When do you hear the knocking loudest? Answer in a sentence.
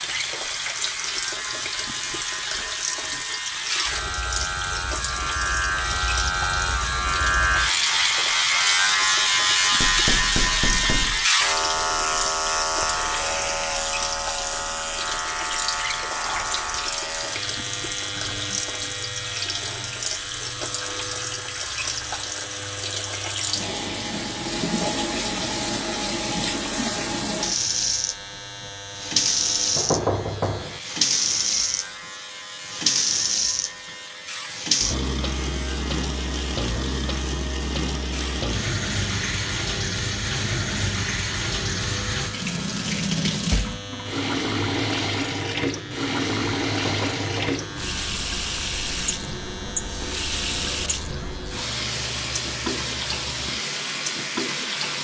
The loudest moment of the knocking is at 30 seconds.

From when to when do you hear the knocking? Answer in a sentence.
You can hear the knocking from 9.8 to 11.2 s, from 29.8 to 30.8 s and from 46.7 to 47.6 s.